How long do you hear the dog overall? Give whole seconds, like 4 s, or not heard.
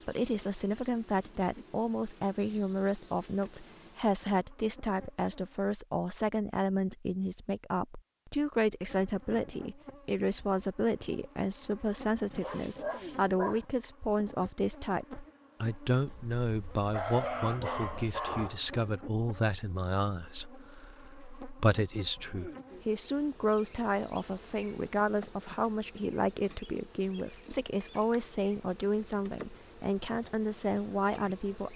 4 s.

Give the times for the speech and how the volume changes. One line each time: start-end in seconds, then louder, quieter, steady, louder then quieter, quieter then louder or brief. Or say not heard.
0.1-31.7 steady.